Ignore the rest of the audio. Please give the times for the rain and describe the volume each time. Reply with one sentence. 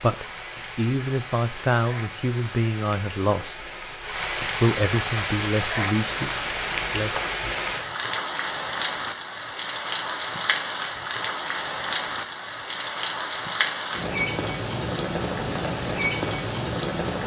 You can hear the rain from 0.0 to 17.2 s, getting louder.